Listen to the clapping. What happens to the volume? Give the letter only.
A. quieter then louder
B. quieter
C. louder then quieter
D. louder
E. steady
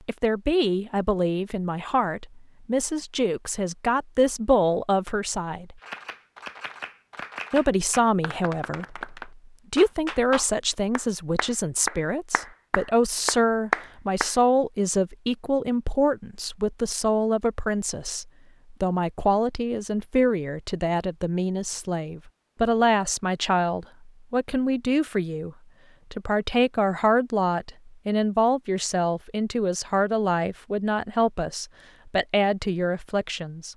D.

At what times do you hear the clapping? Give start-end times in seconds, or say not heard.
5.8-14.3.